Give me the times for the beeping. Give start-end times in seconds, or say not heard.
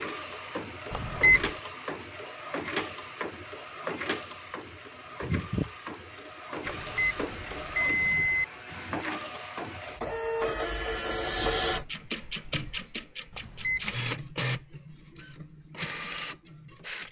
0.9-1.5, 6.7-8.4, 13.3-13.9.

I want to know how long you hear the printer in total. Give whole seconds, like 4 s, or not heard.
17 s.